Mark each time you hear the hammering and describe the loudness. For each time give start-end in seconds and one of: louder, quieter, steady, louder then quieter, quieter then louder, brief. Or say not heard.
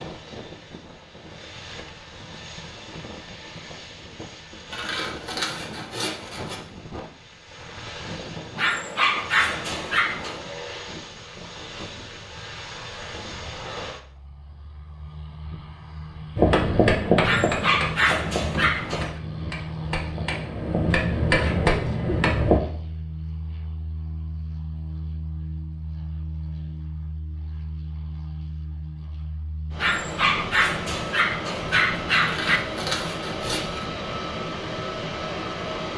16.4-22.6 quieter then louder.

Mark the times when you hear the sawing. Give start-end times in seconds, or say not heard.
4.7-6.6, 32.2-33.9.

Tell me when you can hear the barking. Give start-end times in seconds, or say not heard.
8.6-10.4, 17.2-19.1, 29.8-32.6.